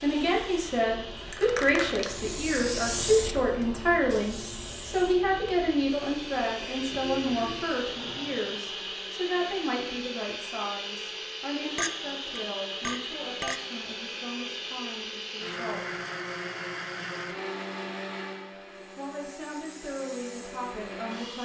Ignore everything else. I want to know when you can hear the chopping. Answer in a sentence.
You can't hear the chopping here.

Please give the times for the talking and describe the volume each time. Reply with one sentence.
The talking can be heard from 0.0 to 16.0 s, getting quieter; and briefly from 18.9 to 21.4 s.